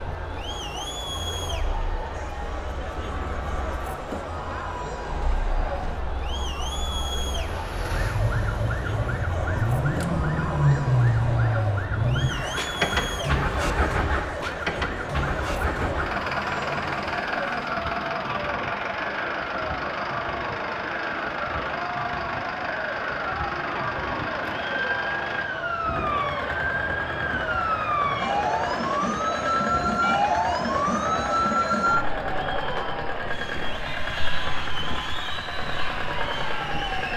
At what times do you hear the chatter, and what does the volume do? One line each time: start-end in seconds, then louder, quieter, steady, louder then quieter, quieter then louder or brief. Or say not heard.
0.0-37.1 steady.